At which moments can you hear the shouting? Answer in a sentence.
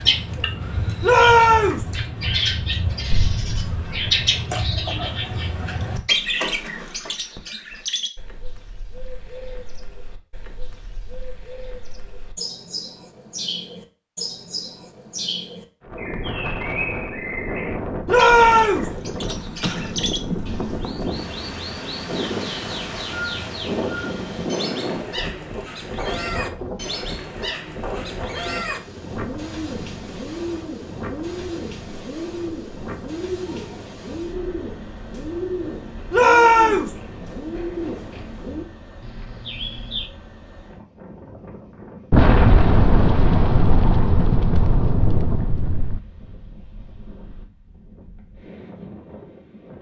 You can hear the shouting from 1.0 to 1.9 s, from 18.1 to 18.9 s and from 36.1 to 36.9 s.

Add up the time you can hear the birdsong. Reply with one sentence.
You can hear the birdsong for 40 seconds altogether.